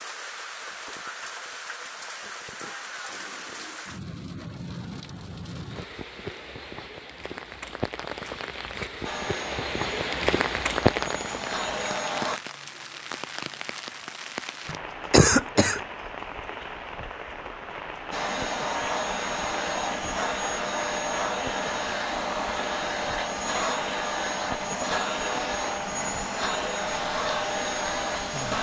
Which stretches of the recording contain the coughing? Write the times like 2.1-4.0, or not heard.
3.0-3.9, 14.7-15.8.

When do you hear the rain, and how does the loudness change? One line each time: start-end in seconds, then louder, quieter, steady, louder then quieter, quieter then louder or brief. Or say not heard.
0.0-28.5 louder then quieter.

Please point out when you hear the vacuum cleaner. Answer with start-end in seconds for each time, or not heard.
9.0-12.4, 18.1-28.5.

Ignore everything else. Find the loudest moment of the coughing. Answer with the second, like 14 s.
15 s.